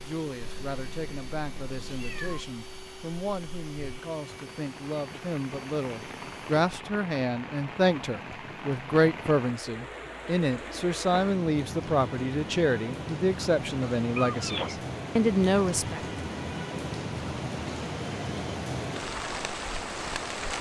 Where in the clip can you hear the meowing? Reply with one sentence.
You can hear the meowing from 0.4 to 2.4 s and from 14.2 to 14.8 s.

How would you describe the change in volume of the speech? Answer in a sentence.
The loudness of the speech goes up.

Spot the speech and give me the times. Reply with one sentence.
The speech can be heard from 0.0 to 16.0 s.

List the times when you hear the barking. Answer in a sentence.
You can't hear the barking here.